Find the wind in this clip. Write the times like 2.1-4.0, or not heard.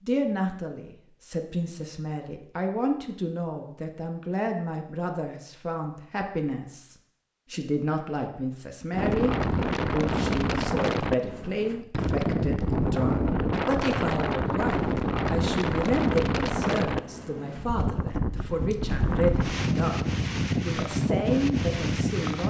8.9-22.4.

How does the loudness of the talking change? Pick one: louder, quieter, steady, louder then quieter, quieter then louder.
steady.